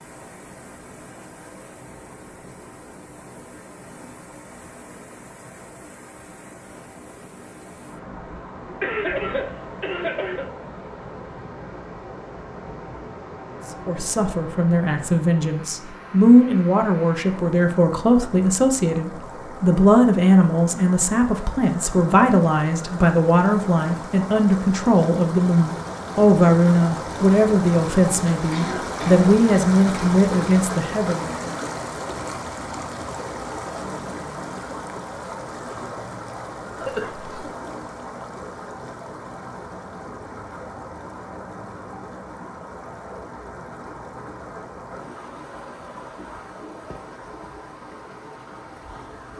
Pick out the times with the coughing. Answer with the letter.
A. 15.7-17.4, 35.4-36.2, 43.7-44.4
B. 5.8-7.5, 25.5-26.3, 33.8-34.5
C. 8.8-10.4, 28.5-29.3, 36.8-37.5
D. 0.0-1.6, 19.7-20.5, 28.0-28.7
C.